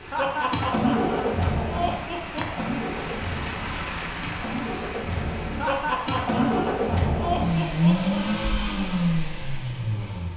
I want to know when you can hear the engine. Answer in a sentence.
You can hear the engine from 0.0 to 10.3 s.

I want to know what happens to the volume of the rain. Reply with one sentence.
The loudness of the rain goes up, then down.